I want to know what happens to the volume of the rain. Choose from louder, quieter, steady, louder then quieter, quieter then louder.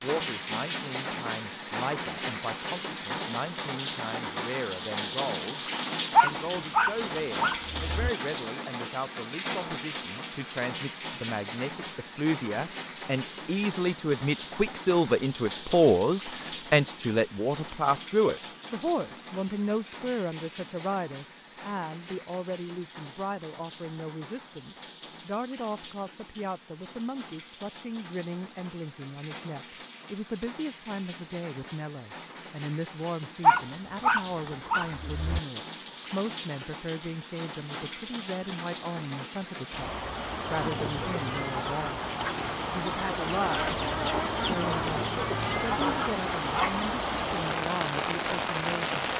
quieter then louder.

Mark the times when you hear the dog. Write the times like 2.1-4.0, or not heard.
6.1-8.1, 33.4-35.4.